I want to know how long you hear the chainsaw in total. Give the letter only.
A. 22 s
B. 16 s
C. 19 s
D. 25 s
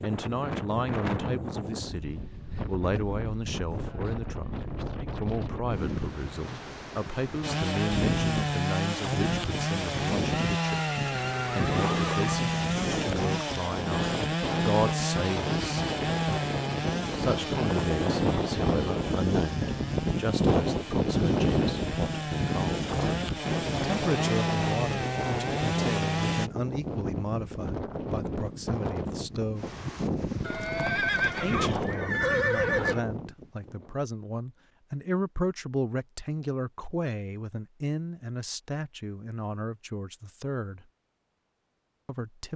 C.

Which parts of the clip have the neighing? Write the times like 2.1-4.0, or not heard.
10.6-12.3, 30.4-33.0.